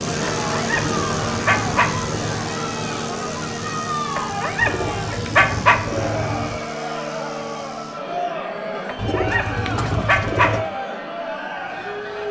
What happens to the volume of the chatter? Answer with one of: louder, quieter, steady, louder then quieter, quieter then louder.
steady.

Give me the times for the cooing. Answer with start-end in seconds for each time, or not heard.
0.8-2.5, 4.5-6.7, 8.9-10.7.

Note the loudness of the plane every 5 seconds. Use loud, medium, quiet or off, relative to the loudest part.
loud, medium, quiet.